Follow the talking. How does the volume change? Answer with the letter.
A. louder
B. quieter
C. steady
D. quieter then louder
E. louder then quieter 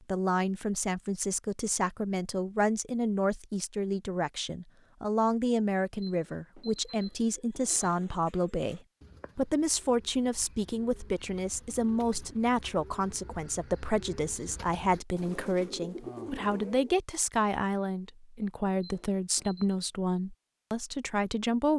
C.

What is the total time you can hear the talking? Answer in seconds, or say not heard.
22 s.